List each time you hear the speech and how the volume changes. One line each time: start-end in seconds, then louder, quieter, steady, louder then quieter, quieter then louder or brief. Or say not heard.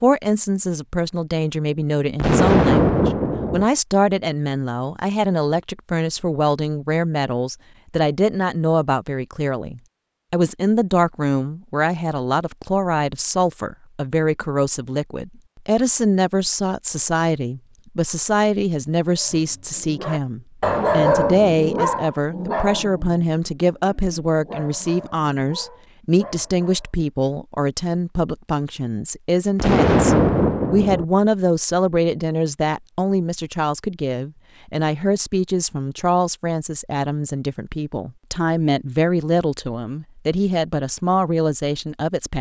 0.0-42.3 steady.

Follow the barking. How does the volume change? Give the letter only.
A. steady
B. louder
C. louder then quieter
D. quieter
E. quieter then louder
D.